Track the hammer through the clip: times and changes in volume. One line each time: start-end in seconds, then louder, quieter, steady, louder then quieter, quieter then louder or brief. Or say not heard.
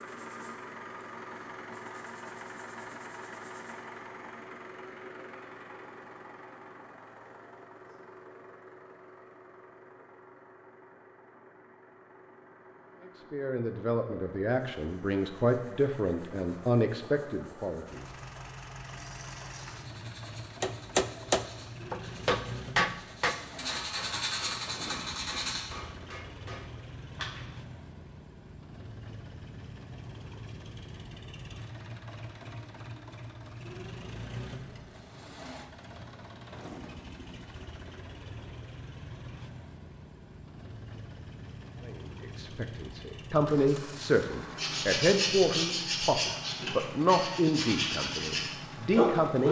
20.6-27.4 quieter.